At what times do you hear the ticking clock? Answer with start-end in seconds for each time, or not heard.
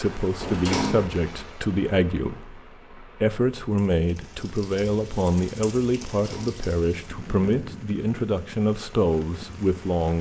not heard.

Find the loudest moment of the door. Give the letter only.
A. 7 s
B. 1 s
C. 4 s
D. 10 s
B.